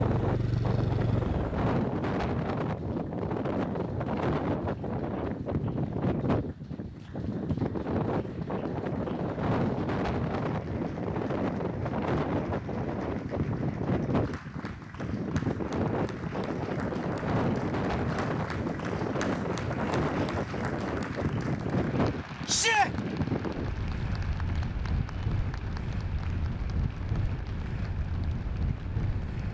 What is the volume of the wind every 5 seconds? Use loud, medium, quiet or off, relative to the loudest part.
loud, loud, loud, loud, loud, medium.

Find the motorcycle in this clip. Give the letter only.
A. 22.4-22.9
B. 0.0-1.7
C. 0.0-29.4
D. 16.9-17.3
B.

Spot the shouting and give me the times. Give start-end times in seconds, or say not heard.
22.4-22.9.